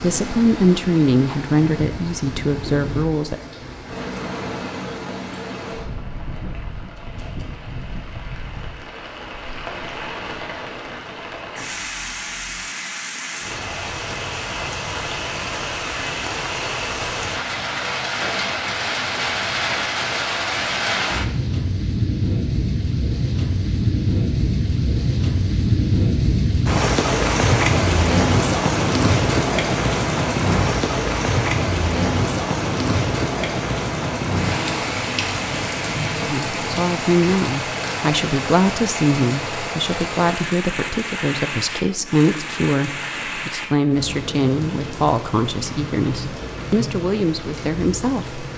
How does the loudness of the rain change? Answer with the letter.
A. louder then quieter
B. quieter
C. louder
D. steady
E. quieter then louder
A.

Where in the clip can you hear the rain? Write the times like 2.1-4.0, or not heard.
0.0-48.5.